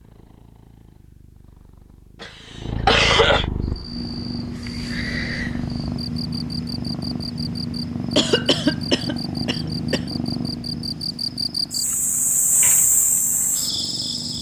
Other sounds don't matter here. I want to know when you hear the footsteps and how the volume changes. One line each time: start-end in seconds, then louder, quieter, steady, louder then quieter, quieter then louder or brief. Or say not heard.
not heard.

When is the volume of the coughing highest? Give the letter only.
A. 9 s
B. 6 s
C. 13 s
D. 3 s
D.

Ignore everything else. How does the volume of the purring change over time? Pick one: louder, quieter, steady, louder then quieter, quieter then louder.
louder then quieter.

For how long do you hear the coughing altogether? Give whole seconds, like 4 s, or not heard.
3 s.